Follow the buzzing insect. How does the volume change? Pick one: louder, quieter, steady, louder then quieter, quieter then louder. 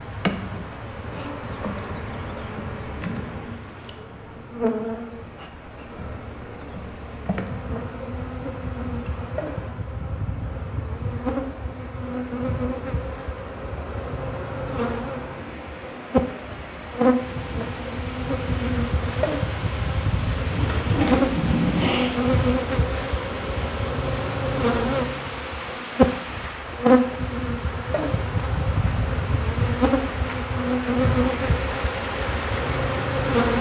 louder.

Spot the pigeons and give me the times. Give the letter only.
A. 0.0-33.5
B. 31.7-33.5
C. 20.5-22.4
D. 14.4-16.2
C.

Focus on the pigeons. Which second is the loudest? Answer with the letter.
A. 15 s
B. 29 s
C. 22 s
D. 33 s
C.